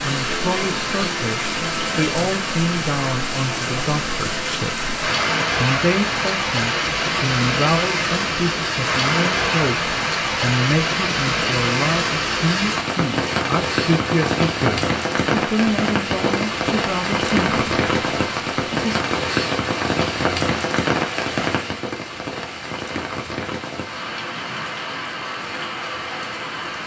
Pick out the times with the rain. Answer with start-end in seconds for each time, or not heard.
0.0-26.8.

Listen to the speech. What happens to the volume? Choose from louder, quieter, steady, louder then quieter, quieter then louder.
steady.